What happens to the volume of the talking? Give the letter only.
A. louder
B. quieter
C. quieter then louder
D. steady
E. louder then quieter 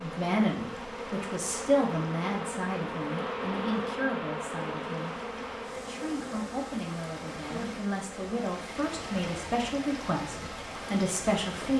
C.